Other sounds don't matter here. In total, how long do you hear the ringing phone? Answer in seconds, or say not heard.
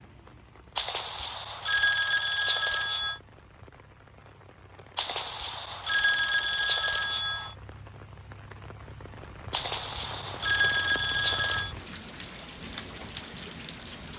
7 s.